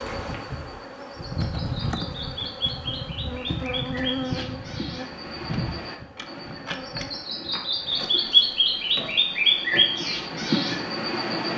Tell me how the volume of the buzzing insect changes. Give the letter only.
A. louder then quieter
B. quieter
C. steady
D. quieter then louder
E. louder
B.